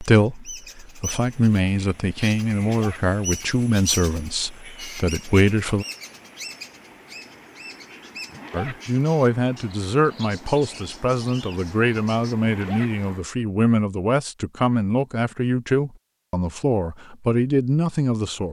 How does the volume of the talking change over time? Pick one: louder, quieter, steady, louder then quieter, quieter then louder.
steady.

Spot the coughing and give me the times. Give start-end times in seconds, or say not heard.
not heard.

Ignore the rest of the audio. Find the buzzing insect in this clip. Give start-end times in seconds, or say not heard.
not heard.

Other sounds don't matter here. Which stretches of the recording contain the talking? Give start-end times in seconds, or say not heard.
0.0-5.8, 8.5-18.4.